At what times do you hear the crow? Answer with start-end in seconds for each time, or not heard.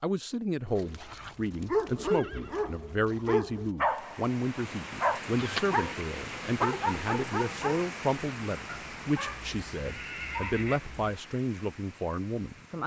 not heard.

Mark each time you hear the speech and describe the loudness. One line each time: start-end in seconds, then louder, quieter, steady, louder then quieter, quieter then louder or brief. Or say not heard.
0.0-12.8 steady.